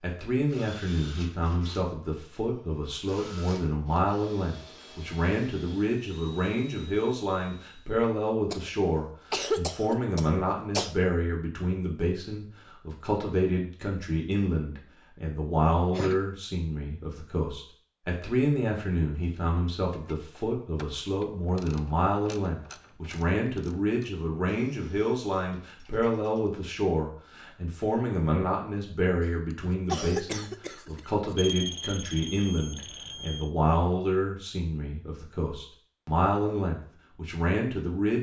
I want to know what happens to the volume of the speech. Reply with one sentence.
The loudness of the speech stays about the same.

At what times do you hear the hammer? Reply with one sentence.
The hammer can't be heard in this clip.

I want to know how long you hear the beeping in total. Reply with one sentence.
The beeping can be heard for 2 seconds in total.